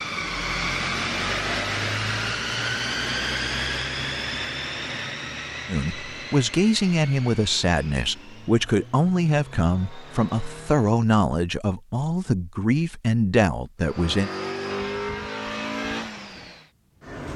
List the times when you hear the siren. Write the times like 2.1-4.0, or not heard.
not heard.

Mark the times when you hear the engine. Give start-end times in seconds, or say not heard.
0.0-11.1, 13.8-17.3.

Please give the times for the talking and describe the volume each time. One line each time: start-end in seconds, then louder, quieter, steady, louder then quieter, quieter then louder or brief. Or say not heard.
5.7-14.3 steady.